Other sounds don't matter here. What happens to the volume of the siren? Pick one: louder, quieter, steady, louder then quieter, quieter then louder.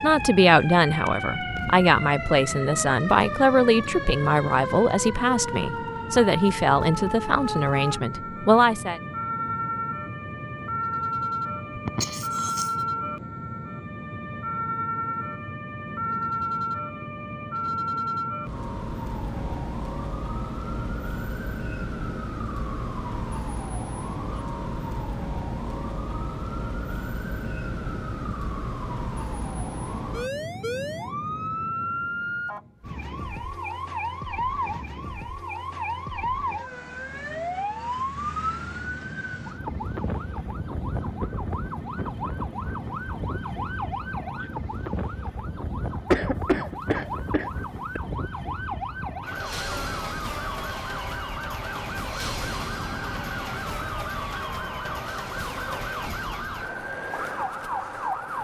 steady.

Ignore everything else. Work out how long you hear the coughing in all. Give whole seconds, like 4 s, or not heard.
3 s.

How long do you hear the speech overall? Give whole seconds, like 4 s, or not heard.
9 s.